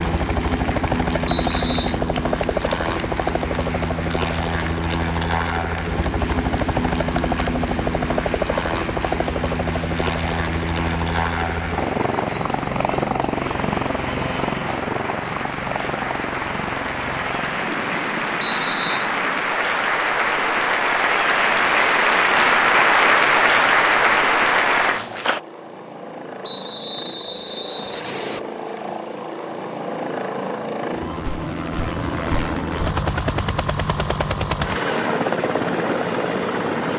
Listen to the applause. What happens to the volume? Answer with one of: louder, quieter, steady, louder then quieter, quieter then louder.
louder.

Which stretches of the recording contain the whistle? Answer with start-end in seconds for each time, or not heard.
1.2-2.0, 18.4-19.1, 26.4-28.4.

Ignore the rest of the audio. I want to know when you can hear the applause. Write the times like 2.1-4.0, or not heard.
0.0-25.4.